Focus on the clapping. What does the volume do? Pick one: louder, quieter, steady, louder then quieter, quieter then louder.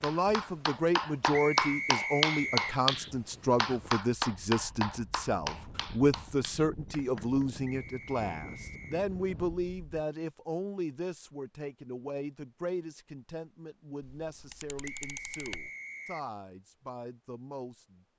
quieter.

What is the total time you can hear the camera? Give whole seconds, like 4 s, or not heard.
2 s.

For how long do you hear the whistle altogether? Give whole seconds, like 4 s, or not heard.
4 s.